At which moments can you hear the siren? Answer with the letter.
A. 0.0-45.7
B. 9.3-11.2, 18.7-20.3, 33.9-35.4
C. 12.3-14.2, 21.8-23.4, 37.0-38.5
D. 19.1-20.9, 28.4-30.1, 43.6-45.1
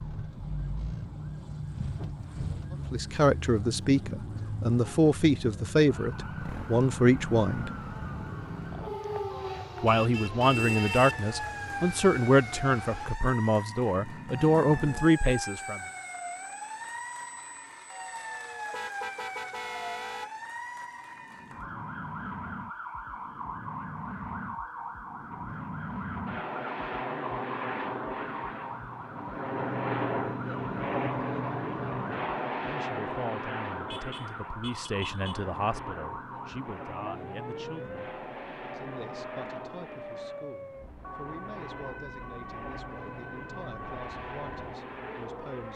A.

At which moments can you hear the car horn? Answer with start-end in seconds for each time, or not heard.
9.3-11.2, 18.7-20.3, 33.9-35.4.